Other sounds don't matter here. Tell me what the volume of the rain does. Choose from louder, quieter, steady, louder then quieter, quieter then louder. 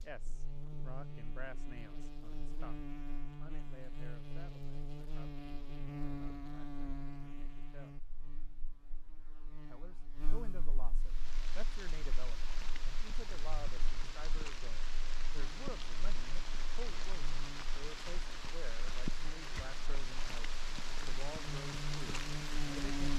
louder.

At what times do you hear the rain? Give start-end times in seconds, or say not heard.
10.9-23.1.